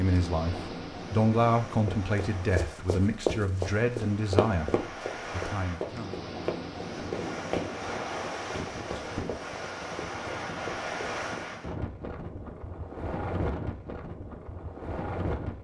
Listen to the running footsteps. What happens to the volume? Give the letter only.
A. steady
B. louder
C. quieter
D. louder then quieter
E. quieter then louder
C.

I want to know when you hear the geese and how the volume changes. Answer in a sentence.
The geese can't be heard in this clip.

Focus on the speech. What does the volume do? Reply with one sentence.
The loudness of the speech goes down.